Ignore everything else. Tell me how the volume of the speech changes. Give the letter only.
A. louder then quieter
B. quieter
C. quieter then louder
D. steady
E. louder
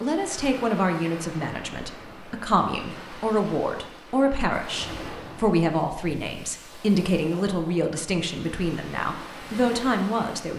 D.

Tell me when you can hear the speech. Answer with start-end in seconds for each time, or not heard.
0.0-10.5.